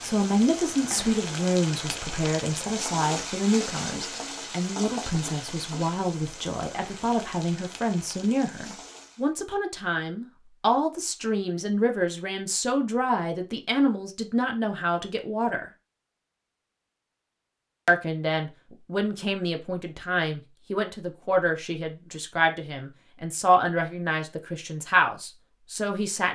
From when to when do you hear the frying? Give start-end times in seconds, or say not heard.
0.0-9.3.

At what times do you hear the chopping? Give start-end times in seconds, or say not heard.
not heard.